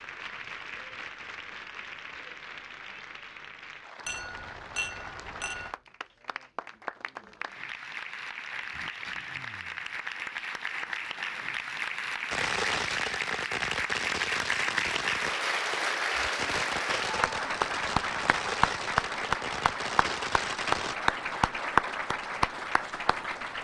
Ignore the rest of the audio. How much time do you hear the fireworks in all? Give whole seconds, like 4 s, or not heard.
9 s.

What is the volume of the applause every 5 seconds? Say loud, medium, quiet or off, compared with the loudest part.
quiet, medium, loud, loud, loud.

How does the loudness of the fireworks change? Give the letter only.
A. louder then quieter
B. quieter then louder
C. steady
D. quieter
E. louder
C.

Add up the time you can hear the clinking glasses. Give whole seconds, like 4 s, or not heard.
2 s.